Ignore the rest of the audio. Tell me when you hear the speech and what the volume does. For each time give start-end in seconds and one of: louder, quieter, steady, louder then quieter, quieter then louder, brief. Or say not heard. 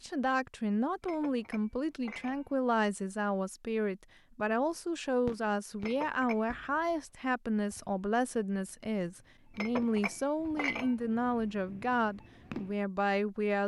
0.0-13.6 steady.